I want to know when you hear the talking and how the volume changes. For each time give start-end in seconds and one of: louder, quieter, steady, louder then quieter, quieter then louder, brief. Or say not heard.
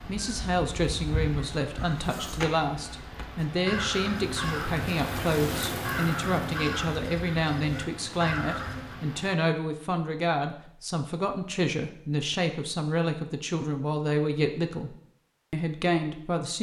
0.0-16.5 steady.